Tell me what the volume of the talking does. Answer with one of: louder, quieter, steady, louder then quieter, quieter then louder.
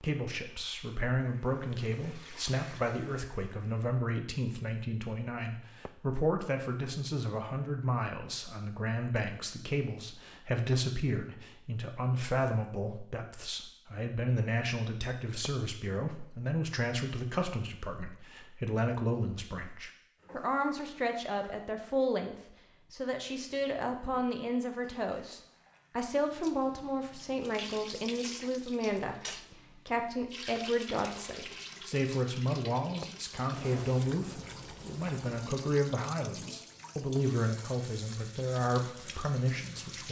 steady.